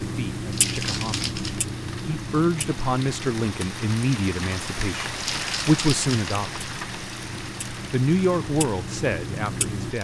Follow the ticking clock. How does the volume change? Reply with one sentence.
The loudness of the ticking clock goes down, then up.